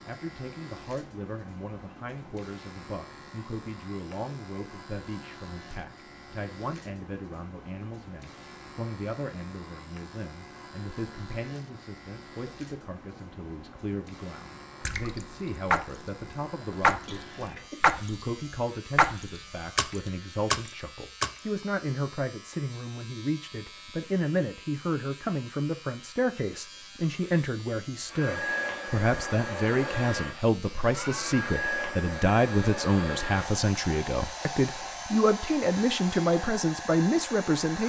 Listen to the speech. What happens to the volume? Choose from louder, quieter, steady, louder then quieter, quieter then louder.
louder.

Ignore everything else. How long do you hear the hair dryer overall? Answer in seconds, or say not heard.
10 s.